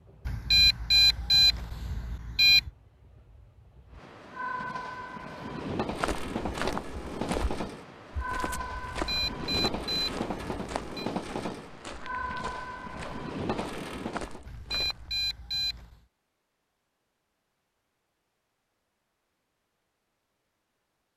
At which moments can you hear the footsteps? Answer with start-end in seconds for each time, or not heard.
5.8-15.3.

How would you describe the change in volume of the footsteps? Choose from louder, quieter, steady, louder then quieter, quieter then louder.
quieter.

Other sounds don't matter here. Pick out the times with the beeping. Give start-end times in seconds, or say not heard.
0.2-2.7, 8.8-11.1, 14.4-16.0.